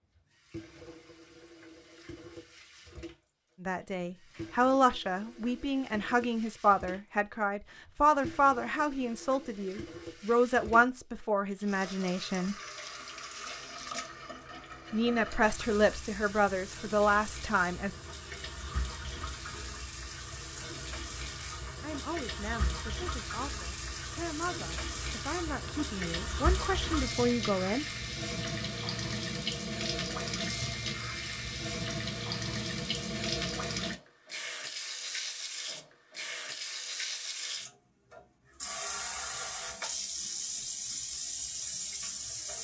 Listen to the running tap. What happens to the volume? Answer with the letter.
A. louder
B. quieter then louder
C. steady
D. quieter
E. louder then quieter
A.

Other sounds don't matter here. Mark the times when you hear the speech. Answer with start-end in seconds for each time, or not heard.
3.6-12.6, 14.9-17.9, 21.8-27.9.